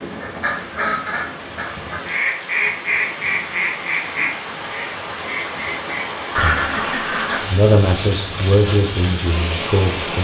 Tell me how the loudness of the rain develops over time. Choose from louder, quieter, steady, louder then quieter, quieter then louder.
louder.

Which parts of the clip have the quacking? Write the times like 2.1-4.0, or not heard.
0.2-7.5.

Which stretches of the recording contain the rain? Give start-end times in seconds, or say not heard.
0.0-10.1.